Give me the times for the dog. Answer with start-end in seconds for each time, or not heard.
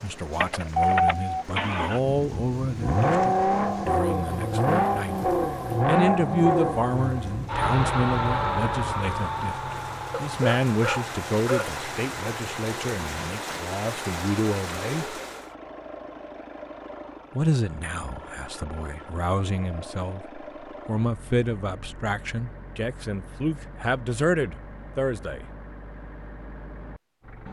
10.2-11.8.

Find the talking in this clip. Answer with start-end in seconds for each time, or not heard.
0.0-15.2, 17.4-25.4.